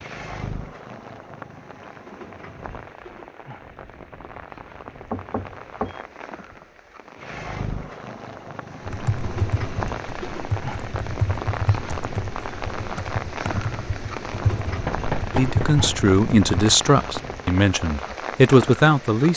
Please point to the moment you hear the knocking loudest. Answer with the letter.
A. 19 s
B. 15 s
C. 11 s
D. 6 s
B.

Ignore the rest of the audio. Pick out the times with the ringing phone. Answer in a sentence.
You can't hear the ringing phone here.